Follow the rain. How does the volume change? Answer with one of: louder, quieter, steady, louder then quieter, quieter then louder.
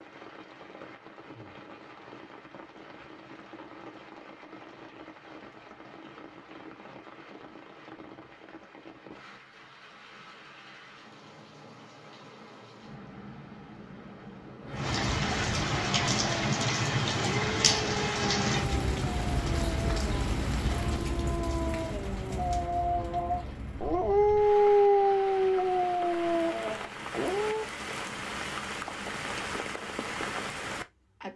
louder then quieter.